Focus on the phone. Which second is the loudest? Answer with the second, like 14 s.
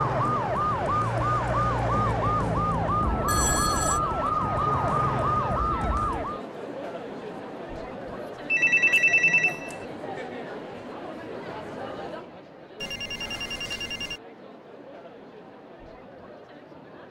9 s.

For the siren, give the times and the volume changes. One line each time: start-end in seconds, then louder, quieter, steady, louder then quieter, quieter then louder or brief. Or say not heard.
0.0-6.4 steady.